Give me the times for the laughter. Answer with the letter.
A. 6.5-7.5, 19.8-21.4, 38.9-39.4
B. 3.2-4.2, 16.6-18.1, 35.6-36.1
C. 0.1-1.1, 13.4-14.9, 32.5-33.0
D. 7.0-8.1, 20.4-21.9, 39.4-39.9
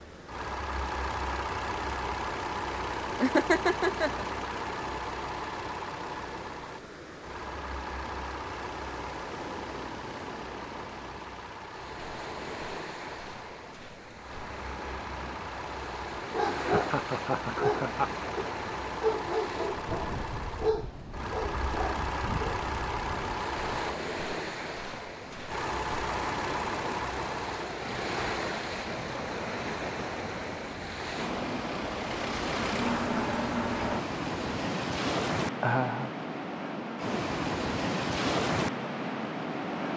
B.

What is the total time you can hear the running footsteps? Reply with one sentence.
The running footsteps can't be heard in this clip.